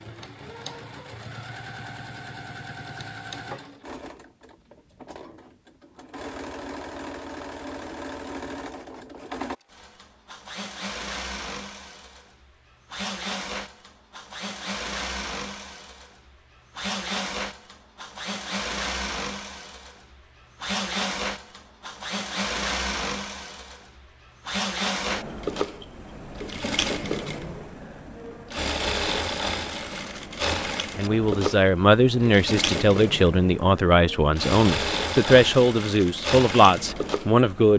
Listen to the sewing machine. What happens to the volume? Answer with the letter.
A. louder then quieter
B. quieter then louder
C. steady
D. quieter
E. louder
E.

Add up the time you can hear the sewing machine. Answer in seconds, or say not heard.
38 s.